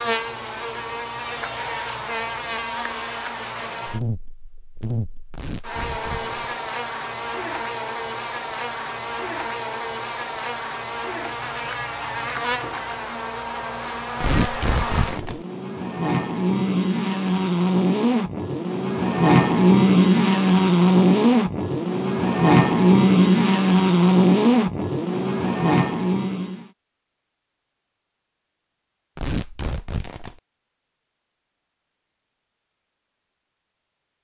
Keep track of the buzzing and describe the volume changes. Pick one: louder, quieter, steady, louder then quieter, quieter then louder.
louder.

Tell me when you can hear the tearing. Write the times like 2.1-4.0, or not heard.
5.3-6.5, 14.2-15.4, 29.1-30.4.